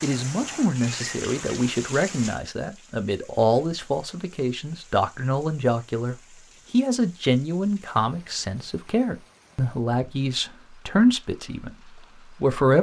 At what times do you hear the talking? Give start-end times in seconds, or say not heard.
0.0-12.7.